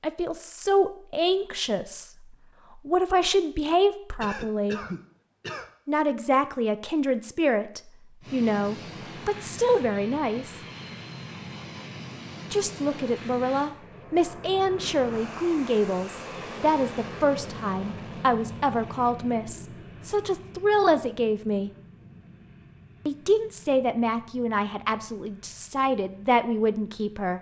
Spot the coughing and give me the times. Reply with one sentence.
You can hear the coughing from 4.2 to 5.7 s.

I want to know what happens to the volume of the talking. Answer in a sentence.
The loudness of the talking stays about the same.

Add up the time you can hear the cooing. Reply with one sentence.
The cooing can't be heard in this clip.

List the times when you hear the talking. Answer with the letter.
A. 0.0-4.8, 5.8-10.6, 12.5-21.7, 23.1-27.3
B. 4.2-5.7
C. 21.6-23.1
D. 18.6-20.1
A.